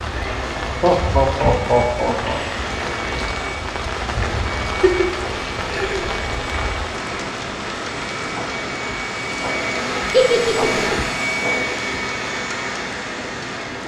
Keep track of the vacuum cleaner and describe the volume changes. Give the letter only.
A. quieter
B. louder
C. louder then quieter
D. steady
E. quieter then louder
B.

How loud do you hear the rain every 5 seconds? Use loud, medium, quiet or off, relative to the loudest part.
loud, loud, medium.